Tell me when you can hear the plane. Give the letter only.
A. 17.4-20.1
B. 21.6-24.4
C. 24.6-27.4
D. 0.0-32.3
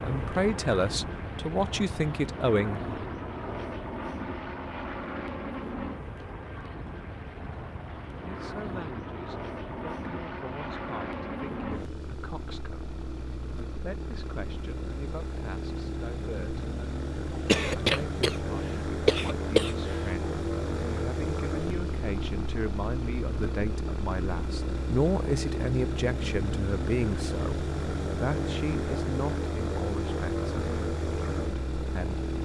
D.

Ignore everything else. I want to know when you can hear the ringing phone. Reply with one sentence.
You can't hear the ringing phone here.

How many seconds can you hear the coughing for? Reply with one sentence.
You can hear the coughing for 3 seconds altogether.